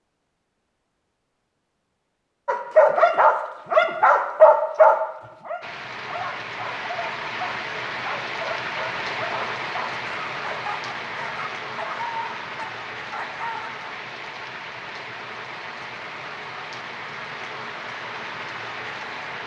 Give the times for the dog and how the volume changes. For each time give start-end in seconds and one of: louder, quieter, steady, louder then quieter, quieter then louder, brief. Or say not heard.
2.5-13.7 quieter.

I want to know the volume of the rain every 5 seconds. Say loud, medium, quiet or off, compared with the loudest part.
off, loud, loud, loud.